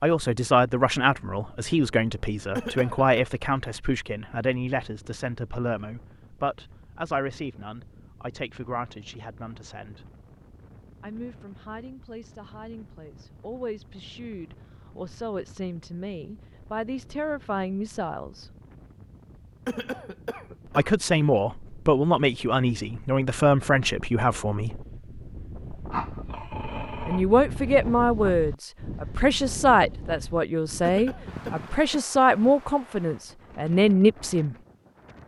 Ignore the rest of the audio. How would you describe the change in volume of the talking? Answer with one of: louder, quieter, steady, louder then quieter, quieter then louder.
quieter then louder.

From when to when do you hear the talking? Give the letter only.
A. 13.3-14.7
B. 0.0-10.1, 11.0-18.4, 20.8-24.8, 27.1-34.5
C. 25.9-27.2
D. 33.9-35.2
B.